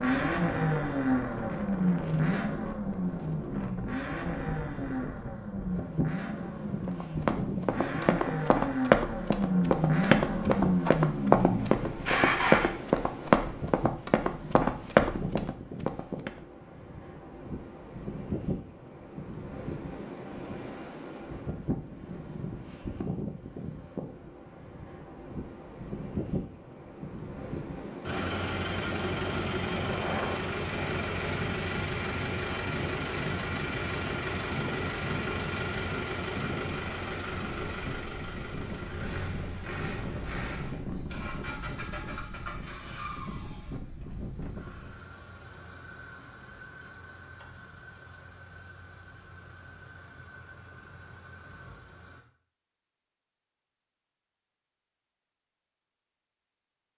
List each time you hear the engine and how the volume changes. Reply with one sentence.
The engine can be heard from 0.0 to 12.7 s, getting quieter then louder; and from 28.1 to 52.2 s, getting quieter.